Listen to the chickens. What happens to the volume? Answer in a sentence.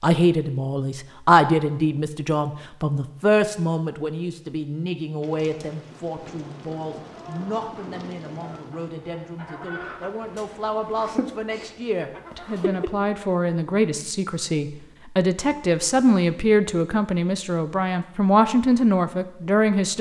The loudness of the chickens goes up, then down.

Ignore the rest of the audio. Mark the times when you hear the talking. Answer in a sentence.
The talking can be heard from 0.0 to 19.9 s.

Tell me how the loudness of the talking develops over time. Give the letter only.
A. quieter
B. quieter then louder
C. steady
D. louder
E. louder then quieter
B.